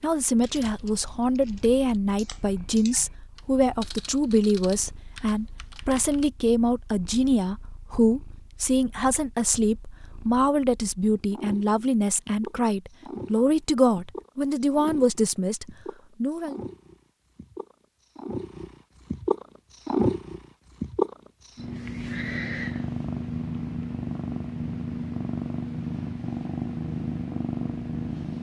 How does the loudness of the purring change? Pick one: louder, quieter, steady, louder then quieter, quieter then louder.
louder.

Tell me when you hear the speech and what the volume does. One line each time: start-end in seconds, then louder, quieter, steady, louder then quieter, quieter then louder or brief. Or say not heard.
0.0-16.6 steady.